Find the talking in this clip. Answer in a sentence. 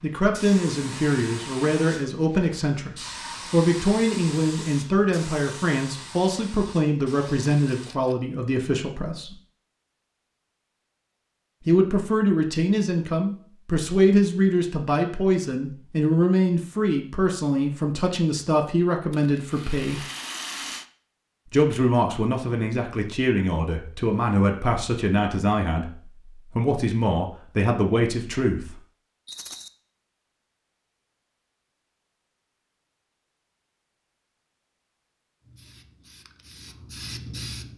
The talking can be heard from 0.0 to 9.3 s, from 11.6 to 20.1 s and from 21.5 to 28.8 s.